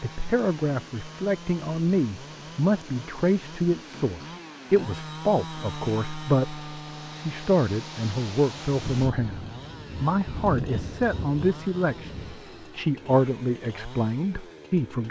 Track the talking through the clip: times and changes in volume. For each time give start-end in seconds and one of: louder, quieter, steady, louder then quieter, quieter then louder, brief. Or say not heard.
0.0-15.0 steady.